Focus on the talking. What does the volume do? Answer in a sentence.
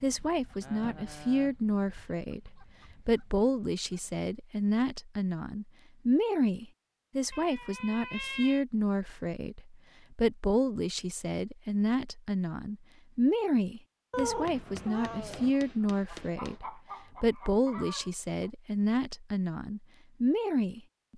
The loudness of the talking stays about the same.